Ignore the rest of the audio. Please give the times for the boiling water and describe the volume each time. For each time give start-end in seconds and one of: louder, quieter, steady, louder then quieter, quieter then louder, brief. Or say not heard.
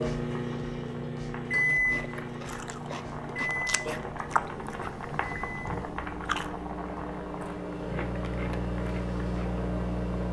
0.0-10.2 louder then quieter.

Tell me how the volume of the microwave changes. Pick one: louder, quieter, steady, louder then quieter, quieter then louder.
quieter then louder.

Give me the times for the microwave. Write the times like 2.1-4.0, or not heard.
0.0-10.2.